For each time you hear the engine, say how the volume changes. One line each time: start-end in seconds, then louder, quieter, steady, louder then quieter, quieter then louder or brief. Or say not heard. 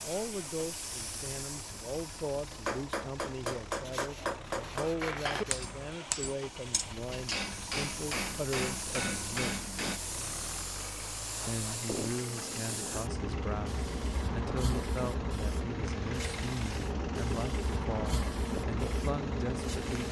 0.0-20.0 louder.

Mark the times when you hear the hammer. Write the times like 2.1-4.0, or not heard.
2.5-10.0.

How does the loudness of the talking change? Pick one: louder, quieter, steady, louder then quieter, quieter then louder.
steady.